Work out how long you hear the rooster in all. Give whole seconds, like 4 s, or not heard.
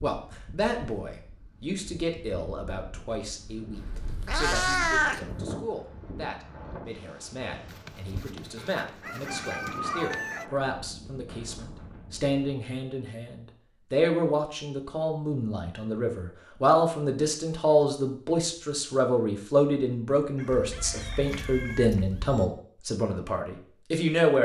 4 s.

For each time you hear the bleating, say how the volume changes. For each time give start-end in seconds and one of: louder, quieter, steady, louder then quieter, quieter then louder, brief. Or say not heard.
not heard.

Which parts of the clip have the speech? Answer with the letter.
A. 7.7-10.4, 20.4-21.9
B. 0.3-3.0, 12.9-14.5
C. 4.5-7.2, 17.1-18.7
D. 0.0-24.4
D.